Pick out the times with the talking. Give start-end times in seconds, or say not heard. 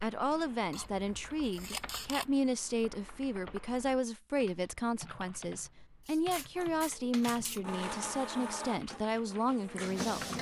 0.0-10.3.